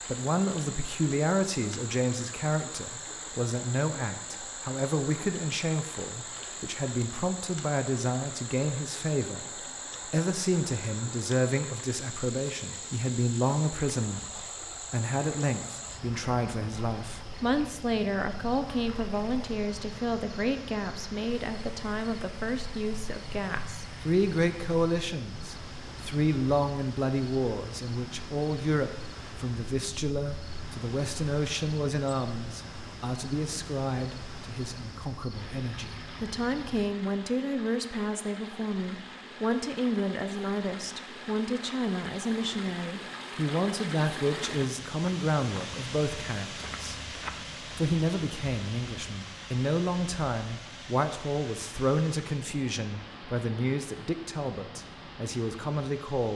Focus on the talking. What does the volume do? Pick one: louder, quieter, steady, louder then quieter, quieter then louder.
steady.